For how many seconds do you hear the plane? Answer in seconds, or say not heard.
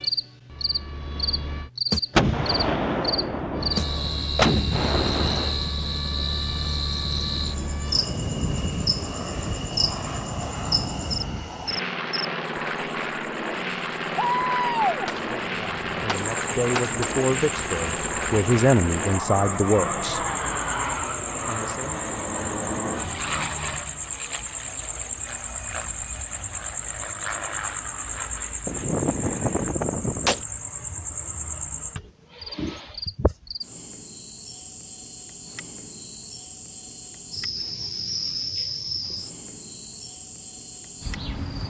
28 s.